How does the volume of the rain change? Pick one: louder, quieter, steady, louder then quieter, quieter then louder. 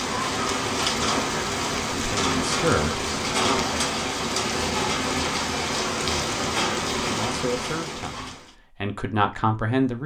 steady.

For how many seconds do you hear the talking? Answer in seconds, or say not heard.
5 s.